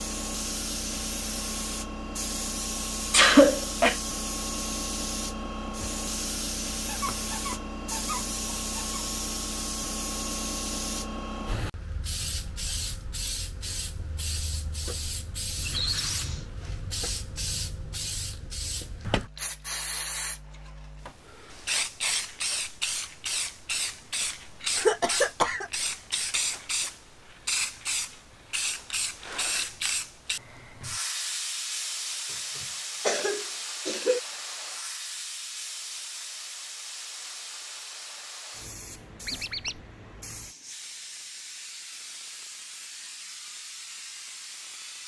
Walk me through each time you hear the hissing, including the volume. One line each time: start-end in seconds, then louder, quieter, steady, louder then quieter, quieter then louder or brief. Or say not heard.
0.0-45.0 quieter.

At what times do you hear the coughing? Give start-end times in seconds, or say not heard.
3.1-4.0, 24.8-25.7, 32.5-34.2.